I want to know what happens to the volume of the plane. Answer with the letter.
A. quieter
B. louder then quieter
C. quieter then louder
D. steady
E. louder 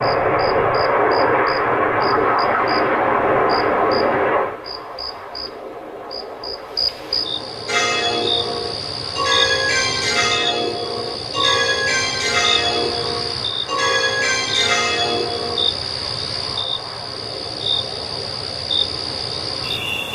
A.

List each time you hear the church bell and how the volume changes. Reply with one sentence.
You can hear the church bell from 7.7 to 15.7 s, at a steady volume.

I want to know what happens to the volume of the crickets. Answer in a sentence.
The volume of the crickets goes up.